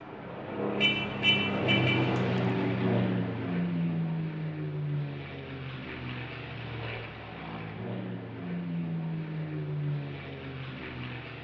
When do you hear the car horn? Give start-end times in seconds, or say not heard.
0.8-2.1.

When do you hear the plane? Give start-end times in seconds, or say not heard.
0.0-11.3.